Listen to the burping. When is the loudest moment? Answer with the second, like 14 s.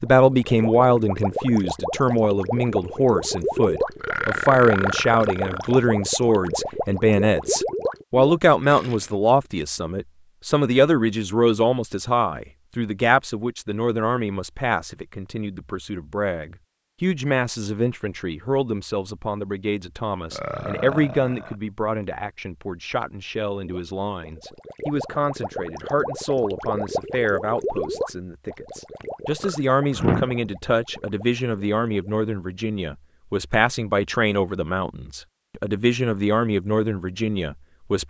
30 s.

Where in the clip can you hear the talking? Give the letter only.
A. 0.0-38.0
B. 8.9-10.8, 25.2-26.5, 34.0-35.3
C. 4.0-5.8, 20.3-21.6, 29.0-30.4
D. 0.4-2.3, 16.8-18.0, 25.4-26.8
A.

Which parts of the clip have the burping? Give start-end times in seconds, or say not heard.
4.0-5.8, 20.3-21.6, 29.0-30.4.